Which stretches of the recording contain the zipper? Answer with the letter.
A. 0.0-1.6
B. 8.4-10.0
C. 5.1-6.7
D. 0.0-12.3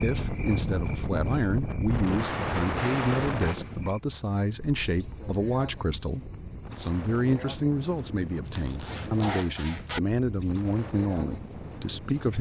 B.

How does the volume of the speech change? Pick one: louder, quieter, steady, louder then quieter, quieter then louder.
steady.